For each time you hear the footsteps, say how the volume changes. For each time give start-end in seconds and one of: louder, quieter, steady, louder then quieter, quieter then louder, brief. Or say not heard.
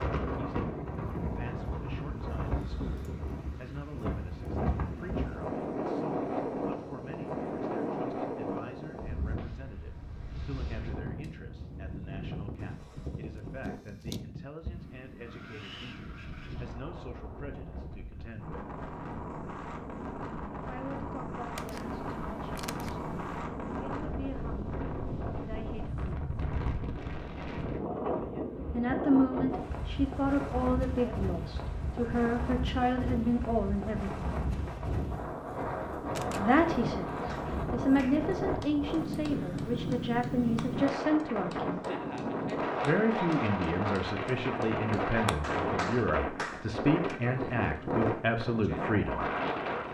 not heard.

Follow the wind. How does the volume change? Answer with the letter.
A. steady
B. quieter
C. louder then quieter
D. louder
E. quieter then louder
E.